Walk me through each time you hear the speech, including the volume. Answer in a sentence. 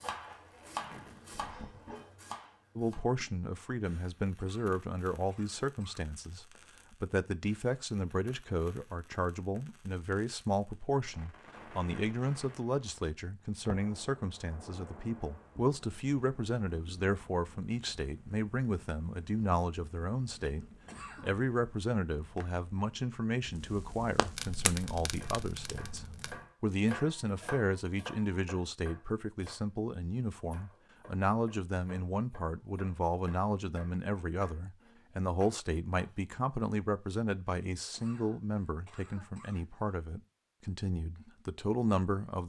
The speech can be heard from 2.8 to 42.4 s, at a steady volume.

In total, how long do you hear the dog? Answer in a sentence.
You can't hear the dog here.